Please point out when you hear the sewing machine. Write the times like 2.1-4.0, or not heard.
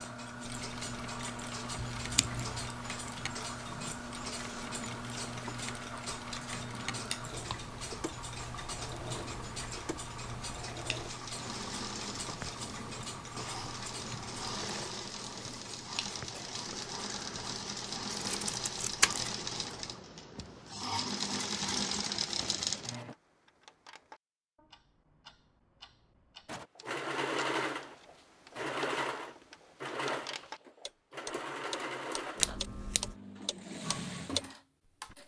0.0-23.1, 26.4-35.2.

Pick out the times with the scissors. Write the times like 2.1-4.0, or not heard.
1.8-2.8, 18.1-19.3, 32.4-33.1.